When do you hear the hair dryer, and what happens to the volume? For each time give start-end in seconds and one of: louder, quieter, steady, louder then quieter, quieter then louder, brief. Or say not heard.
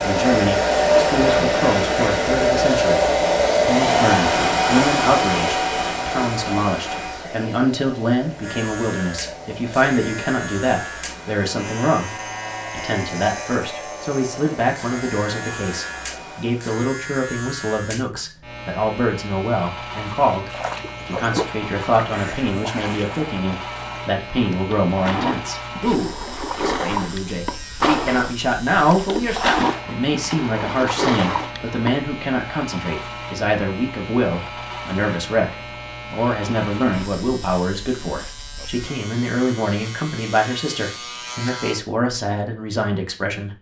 0.0-16.8 quieter.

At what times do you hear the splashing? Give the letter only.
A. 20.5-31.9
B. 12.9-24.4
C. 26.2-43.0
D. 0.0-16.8
A.